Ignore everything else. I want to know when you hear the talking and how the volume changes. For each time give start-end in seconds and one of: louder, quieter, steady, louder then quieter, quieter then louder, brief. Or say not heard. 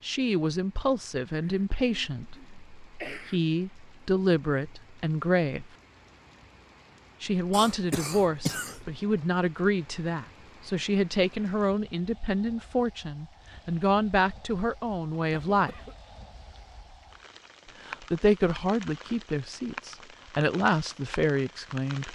0.0-5.7 quieter then louder
7.2-15.8 steady
17.9-22.1 quieter then louder.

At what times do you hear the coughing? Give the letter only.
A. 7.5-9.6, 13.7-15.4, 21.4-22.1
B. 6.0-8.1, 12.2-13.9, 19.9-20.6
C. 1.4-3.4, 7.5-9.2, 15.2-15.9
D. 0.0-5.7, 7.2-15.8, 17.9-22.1
C.